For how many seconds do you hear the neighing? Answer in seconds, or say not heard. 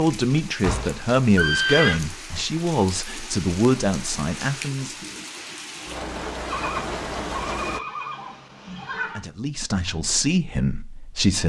4 s.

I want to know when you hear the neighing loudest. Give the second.
2 s.